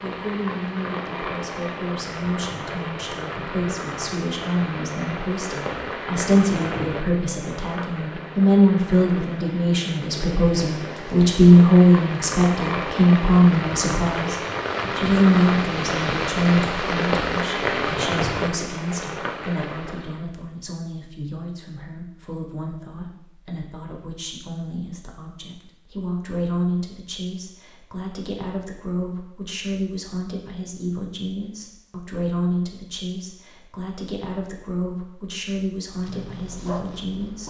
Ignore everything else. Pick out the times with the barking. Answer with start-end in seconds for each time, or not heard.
35.9-37.4.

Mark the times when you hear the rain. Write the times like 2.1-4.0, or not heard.
0.0-20.2.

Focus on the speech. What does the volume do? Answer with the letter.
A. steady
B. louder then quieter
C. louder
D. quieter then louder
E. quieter
B.